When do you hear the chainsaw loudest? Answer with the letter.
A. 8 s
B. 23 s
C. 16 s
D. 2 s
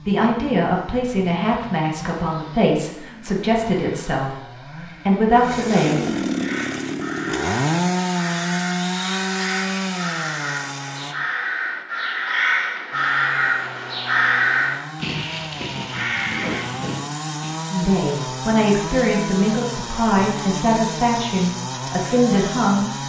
A.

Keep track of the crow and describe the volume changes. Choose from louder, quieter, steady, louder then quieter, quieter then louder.
louder then quieter.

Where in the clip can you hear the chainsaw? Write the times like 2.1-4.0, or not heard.
0.0-11.2, 12.9-23.0.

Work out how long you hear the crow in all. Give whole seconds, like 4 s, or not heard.
11 s.